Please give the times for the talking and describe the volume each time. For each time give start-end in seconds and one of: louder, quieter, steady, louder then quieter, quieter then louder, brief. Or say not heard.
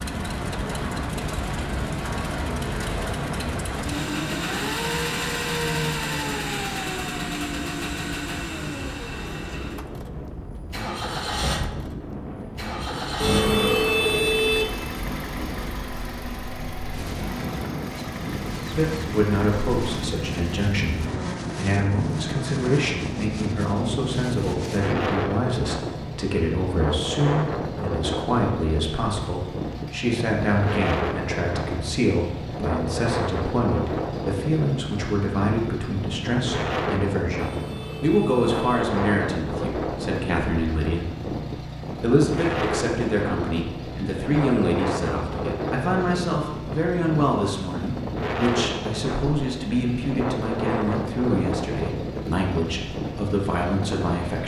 18.7-54.4 steady.